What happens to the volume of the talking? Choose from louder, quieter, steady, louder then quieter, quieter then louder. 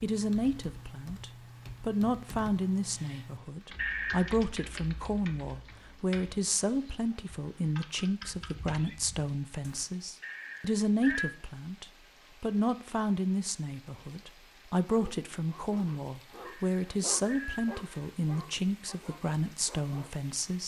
steady.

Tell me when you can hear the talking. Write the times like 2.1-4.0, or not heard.
0.0-20.6.